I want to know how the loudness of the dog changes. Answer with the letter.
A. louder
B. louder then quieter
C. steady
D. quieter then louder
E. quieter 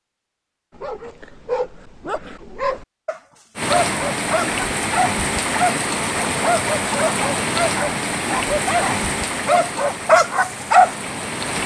A.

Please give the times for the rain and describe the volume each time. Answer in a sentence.
You can hear the rain from 3.5 to 11.6 s, getting quieter.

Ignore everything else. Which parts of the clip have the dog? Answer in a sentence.
The dog can be heard from 0.8 to 10.9 s.